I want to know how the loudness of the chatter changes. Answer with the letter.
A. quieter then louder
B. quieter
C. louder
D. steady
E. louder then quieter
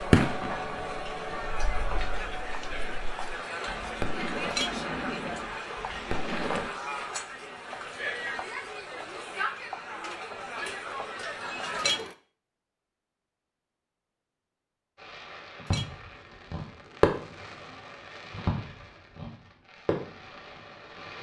D.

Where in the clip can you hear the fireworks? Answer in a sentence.
The fireworks can be heard from 0.0 to 6.7 s and from 14.9 to 21.1 s.